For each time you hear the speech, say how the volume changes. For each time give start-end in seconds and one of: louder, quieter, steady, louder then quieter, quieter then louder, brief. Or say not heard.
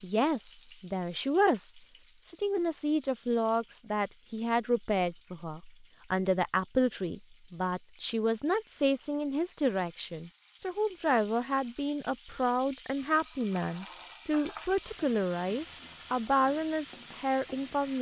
0.0-17.9 steady.